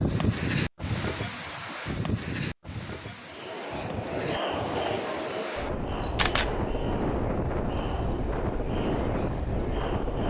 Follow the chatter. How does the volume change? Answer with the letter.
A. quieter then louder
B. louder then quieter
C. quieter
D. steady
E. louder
C.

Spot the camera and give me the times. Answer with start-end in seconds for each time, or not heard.
6.0-6.5.